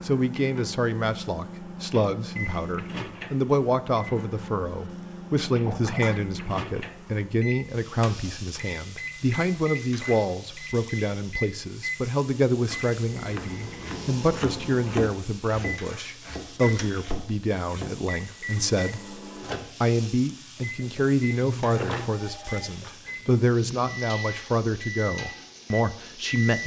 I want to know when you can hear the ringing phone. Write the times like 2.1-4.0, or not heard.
5.7-6.2, 21.7-22.9.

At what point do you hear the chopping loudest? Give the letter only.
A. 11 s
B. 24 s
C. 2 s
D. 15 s
D.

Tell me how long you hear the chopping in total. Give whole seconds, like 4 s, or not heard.
5 s.